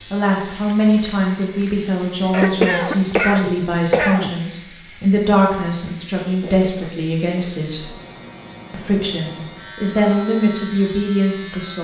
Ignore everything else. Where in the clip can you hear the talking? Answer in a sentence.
You can hear the talking from 0.0 to 8.0 s and from 8.7 to 11.8 s.